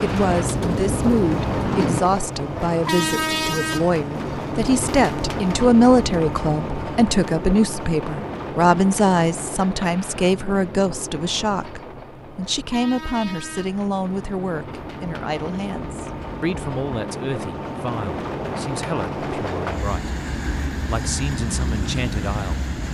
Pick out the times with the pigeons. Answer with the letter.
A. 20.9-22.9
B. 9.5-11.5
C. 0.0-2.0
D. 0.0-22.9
C.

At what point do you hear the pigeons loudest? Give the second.
2 s.